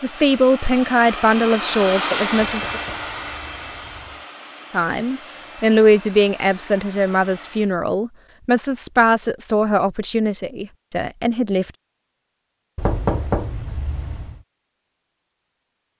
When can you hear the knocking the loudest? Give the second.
13 s.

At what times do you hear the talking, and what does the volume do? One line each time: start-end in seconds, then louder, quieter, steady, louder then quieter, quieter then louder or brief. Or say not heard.
0.0-2.8 brief
4.7-11.7 quieter.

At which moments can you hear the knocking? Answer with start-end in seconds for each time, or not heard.
2.3-4.2, 12.8-14.4.